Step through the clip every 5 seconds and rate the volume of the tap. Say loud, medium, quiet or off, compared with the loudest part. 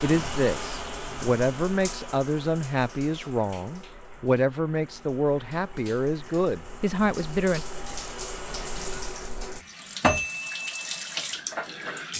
medium, medium, loud.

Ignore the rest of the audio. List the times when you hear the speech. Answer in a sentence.
You can hear the speech from 0.0 to 7.7 s.